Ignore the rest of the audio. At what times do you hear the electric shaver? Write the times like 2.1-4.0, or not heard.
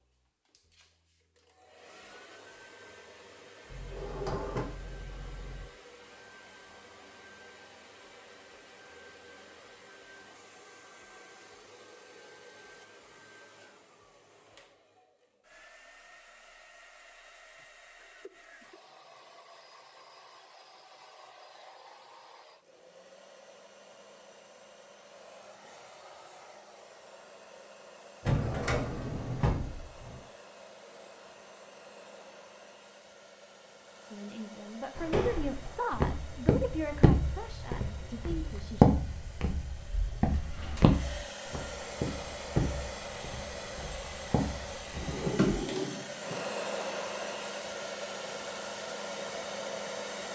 not heard.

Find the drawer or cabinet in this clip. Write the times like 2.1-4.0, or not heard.
3.7-5.7, 28.2-30.2, 45.0-46.4.